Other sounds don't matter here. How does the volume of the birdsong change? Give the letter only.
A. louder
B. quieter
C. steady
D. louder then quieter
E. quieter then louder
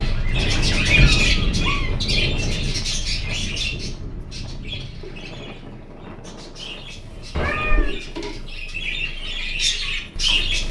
E.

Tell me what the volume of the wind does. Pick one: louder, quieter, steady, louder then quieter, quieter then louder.
quieter.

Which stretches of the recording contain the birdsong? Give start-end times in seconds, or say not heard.
0.0-10.6.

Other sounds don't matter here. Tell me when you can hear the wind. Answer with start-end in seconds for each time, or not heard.
0.0-10.6.